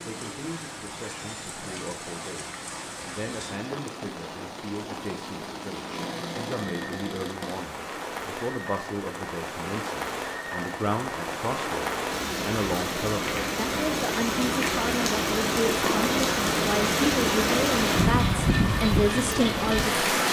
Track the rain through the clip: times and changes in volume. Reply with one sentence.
You can hear the rain from 0.0 to 20.2 s, getting louder.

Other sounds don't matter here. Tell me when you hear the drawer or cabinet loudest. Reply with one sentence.
The loudest moment of the drawer or cabinet is at 16 seconds.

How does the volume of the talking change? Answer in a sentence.
The volume of the talking goes up.